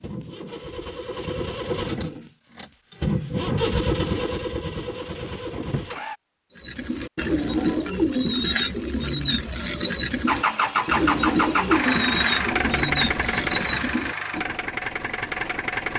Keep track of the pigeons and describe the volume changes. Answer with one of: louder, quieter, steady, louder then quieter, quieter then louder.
steady.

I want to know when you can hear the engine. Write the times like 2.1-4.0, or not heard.
0.0-6.2, 10.2-15.9.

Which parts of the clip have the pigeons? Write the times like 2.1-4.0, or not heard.
6.5-14.5.